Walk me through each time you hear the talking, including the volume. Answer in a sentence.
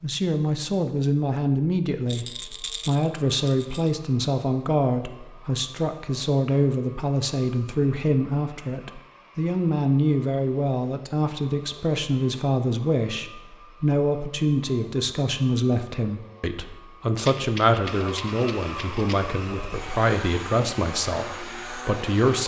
You can hear the talking from 0.0 to 22.4 s, at a steady volume.